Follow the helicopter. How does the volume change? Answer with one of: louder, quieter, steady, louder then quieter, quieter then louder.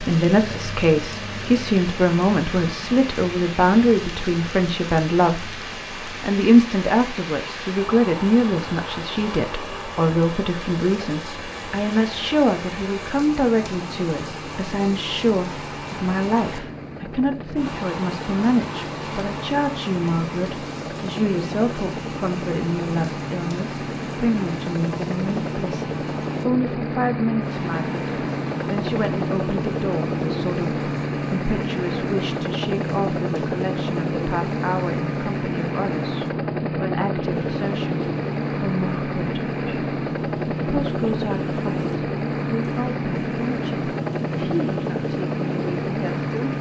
louder.